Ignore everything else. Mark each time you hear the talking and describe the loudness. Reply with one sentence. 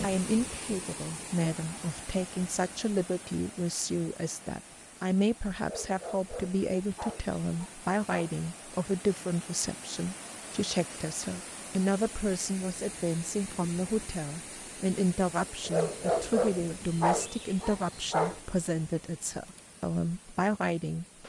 You can hear the talking from 0.0 to 21.2 s, at a steady volume.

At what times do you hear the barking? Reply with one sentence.
The barking can be heard from 5.6 to 8.3 s and from 15.7 to 18.4 s.